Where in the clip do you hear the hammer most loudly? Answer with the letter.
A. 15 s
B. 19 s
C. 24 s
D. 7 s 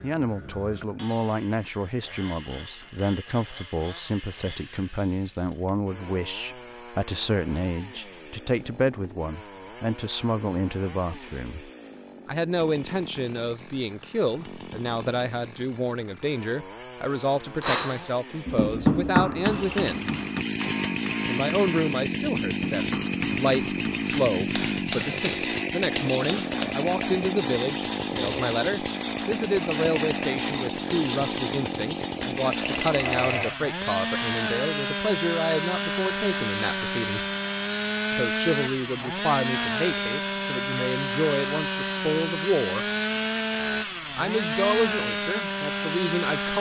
B.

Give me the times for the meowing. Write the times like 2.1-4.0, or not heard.
not heard.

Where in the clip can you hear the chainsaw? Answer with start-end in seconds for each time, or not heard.
0.0-46.5.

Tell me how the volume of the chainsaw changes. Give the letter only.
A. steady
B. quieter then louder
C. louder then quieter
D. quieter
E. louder
E.